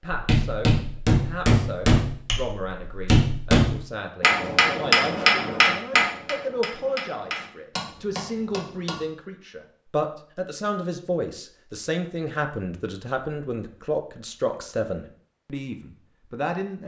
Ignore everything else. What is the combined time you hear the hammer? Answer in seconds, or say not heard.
9 s.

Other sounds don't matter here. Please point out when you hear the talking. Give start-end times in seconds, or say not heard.
0.0-16.8.